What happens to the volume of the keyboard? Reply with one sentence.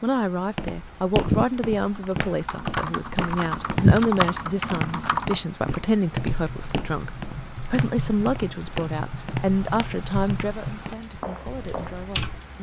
The volume of the keyboard goes up, then down.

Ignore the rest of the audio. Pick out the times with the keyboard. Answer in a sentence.
You can hear the keyboard from 1.2 to 12.4 s.